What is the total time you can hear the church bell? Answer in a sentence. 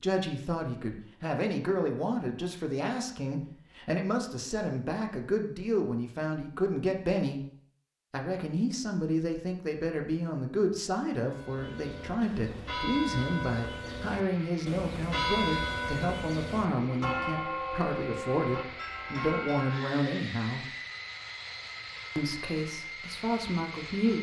You can hear the church bell for 9 seconds altogether.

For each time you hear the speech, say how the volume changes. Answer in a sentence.
You can hear the speech from 0.0 to 7.4 s, at a steady volume; from 8.1 to 20.6 s, at a steady volume; and briefly from 22.1 to 24.1 s.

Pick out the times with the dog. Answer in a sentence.
You can't hear the dog here.